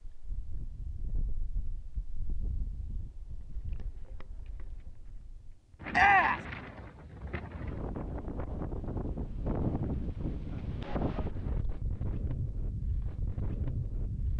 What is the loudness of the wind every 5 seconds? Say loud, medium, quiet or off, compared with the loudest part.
quiet, loud, loud.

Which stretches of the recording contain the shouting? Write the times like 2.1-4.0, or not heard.
5.9-6.5.